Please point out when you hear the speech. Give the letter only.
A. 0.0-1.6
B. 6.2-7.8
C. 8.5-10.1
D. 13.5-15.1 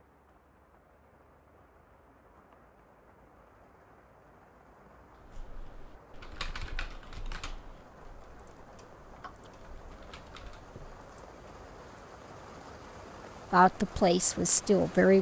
D.